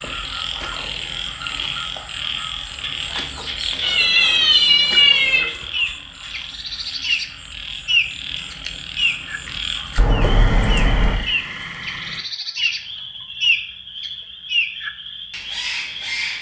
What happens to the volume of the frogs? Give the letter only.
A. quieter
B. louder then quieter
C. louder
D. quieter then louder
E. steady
A.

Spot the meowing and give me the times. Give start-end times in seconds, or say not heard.
3.8-5.5, 9.9-11.2.